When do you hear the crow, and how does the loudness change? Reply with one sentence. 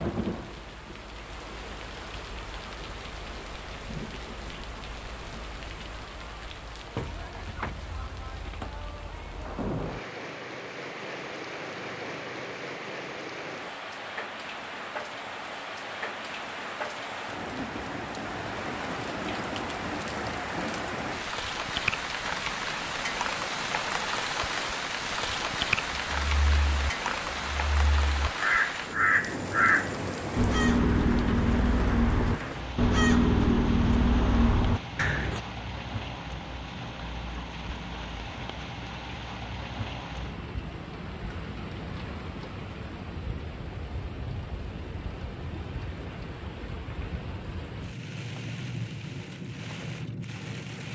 The crow can be heard from 25.9 to 35.4 s, getting louder.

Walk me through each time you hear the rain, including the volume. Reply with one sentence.
You can hear the rain from 0.0 to 50.8 s, getting louder then quieter.